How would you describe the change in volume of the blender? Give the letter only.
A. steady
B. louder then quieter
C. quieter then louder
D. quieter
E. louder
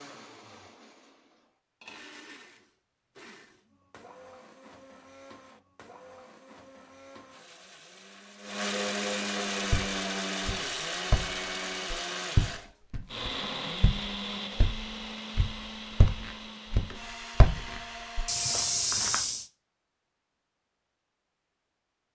B.